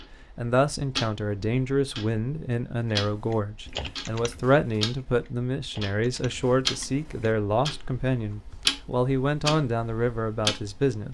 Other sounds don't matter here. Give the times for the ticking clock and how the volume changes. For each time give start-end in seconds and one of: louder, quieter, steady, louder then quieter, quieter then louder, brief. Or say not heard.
0.0-11.0 louder.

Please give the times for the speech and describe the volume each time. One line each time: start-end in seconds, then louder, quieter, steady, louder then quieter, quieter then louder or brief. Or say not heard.
0.3-11.0 steady.